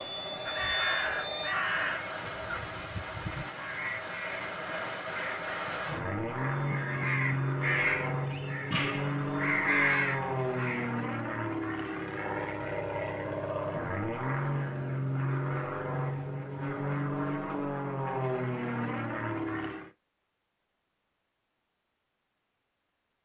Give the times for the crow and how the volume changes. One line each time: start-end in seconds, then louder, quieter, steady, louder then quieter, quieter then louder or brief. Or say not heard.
0.5-11.2 quieter then louder.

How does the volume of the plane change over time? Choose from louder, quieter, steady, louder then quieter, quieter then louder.
steady.